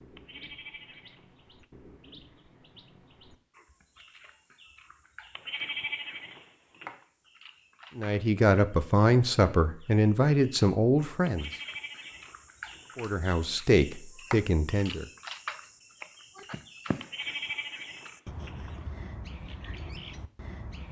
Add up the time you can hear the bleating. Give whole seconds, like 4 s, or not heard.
7 s.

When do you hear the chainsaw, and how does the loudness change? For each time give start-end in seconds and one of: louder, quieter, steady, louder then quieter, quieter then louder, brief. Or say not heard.
not heard.